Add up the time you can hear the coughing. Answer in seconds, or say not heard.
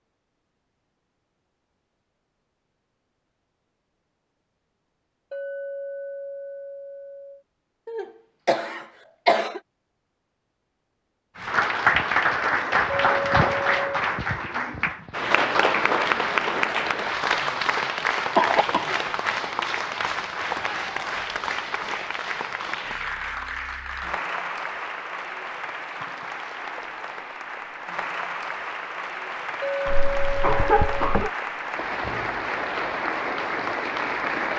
4 s.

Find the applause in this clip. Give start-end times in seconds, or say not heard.
11.3-34.5.